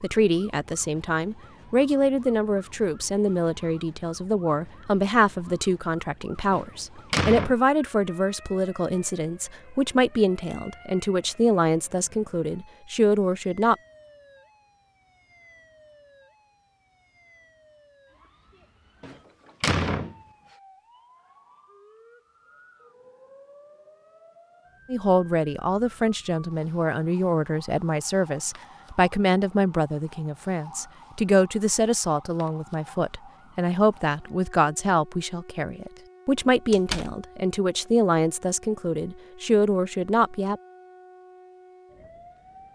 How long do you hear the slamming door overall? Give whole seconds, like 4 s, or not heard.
3 s.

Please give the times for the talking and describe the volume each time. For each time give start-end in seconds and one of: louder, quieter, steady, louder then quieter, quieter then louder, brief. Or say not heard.
0.0-13.8 steady
24.9-40.6 steady.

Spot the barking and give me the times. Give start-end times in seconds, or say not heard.
not heard.